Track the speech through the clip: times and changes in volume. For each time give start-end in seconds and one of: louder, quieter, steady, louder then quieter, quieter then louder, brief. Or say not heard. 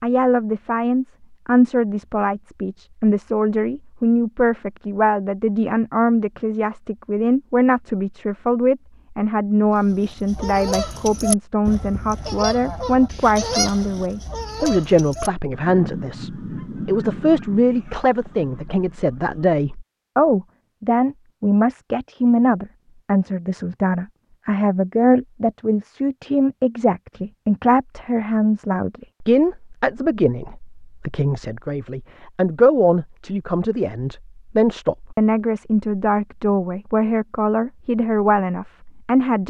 0.0-39.4 steady.